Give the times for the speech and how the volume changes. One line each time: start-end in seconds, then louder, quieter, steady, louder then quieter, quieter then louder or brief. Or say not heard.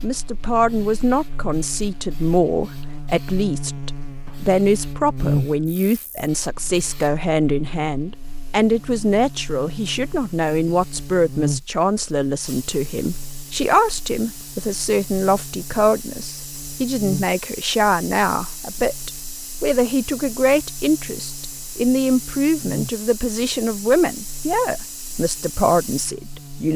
0.0-26.7 steady.